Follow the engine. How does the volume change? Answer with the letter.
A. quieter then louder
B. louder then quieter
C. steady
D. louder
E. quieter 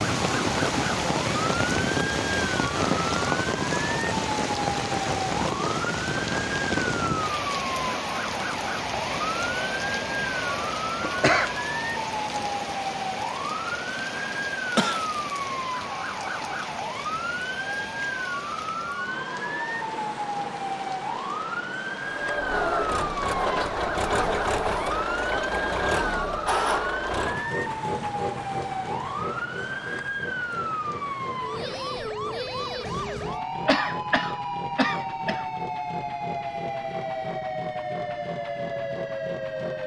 E.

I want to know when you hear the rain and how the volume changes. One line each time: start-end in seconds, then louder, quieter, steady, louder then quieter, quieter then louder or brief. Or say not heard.
0.0-31.9 quieter.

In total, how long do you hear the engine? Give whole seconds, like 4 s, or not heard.
18 s.